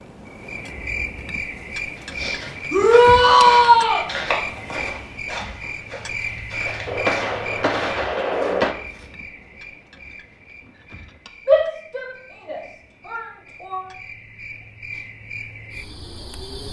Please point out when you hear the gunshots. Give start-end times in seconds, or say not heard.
6.8-8.8.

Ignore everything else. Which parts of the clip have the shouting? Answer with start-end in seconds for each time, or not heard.
2.7-4.0, 11.4-13.8.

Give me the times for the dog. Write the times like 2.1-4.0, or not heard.
not heard.